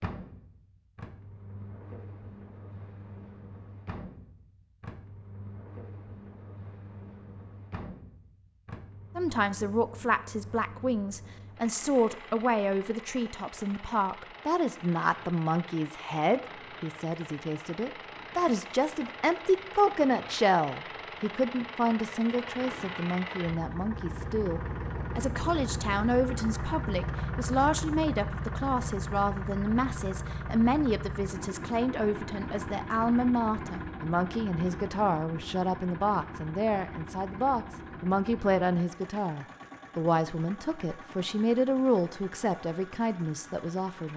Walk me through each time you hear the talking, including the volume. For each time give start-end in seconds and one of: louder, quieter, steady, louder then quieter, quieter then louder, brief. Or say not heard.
9.2-44.1 steady.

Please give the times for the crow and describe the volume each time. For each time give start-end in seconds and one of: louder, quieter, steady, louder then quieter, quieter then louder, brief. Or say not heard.
not heard.